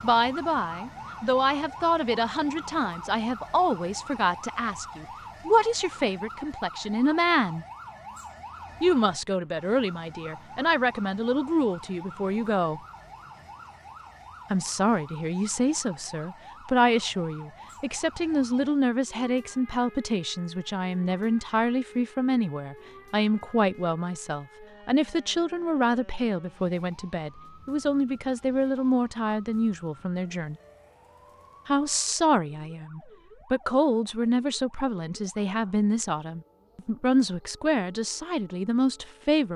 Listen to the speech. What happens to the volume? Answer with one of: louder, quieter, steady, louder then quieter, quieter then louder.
steady.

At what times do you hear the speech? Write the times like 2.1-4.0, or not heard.
0.0-7.7, 8.8-12.8, 14.5-30.6, 31.6-39.5.